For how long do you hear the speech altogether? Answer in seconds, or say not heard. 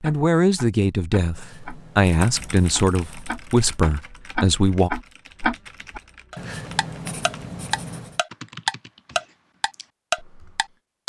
5 s.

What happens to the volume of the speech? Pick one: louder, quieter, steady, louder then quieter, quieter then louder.
steady.